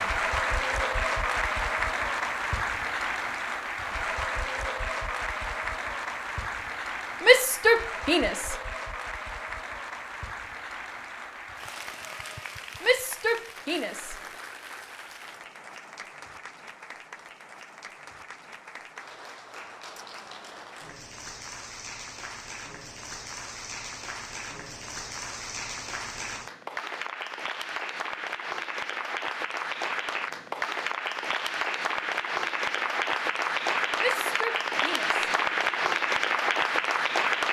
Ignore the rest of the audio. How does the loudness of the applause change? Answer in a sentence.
The volume of the applause goes down, then up.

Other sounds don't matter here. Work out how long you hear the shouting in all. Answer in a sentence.
The shouting can be heard for 4 seconds in total.